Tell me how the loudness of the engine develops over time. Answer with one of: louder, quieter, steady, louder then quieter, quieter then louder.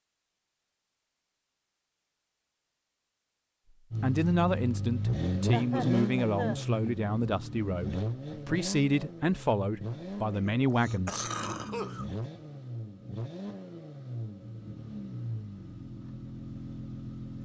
quieter.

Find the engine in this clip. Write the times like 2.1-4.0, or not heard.
3.9-17.3.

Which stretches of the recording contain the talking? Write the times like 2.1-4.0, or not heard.
4.0-11.3.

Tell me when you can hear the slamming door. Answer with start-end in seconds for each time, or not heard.
not heard.